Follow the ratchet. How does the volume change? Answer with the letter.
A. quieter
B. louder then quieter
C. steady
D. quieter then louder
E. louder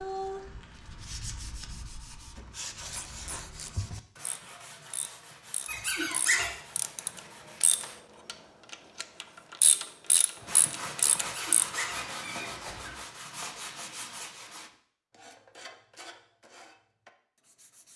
E.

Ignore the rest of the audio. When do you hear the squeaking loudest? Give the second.
6 s.